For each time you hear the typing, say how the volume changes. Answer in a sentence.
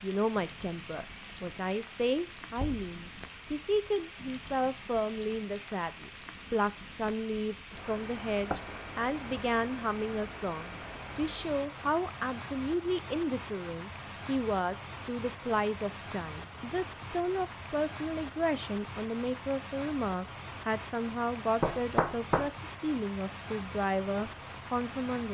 You can't hear the typing here.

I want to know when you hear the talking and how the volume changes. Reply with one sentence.
You can hear the talking from 0.0 to 25.3 s, at a steady volume.